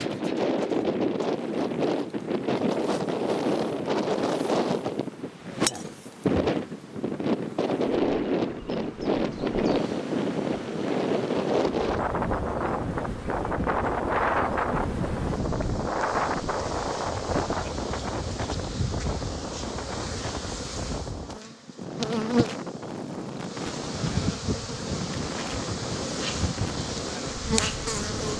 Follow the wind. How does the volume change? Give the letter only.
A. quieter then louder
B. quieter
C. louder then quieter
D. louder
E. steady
B.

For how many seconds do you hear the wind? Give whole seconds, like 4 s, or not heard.
28 s.